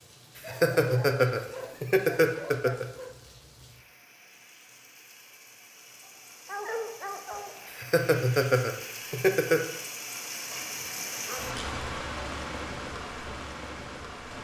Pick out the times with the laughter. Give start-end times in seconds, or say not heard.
0.3-2.9, 7.7-9.6.